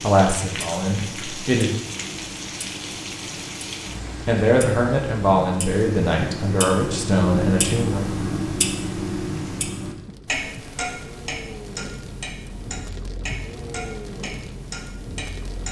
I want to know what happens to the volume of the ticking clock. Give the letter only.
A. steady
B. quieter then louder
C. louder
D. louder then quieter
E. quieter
D.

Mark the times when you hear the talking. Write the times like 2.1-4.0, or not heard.
0.0-1.7, 4.2-8.0.